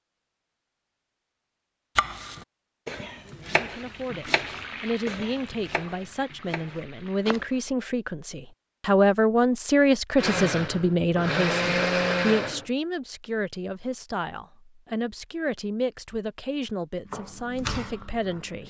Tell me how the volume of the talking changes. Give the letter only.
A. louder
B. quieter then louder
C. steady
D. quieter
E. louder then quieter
E.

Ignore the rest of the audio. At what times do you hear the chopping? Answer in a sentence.
You can hear the chopping from 1.9 to 7.5 s and from 17.1 to 18.6 s.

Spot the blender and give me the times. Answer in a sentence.
You can hear the blender from 10.2 to 12.7 s.